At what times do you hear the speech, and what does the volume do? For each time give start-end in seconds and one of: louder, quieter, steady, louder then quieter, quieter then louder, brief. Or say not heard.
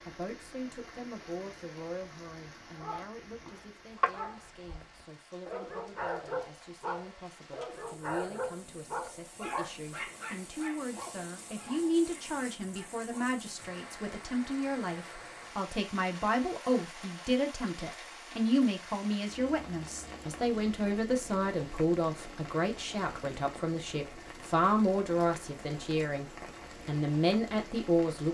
0.1-28.2 louder.